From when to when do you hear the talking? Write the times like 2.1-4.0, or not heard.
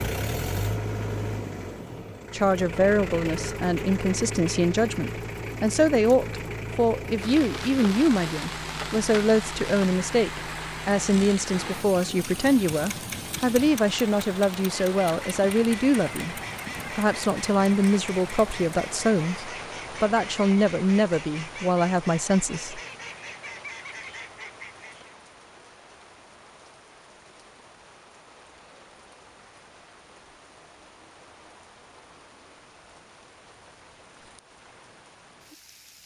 2.3-16.4, 16.9-22.8.